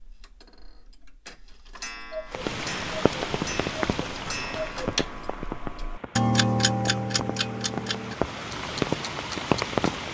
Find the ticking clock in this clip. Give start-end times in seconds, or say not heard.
0.0-9.9.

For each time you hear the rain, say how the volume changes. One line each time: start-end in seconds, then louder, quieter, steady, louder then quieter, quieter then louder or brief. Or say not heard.
2.3-10.1 quieter then louder.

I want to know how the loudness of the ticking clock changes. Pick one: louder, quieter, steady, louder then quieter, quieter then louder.
louder then quieter.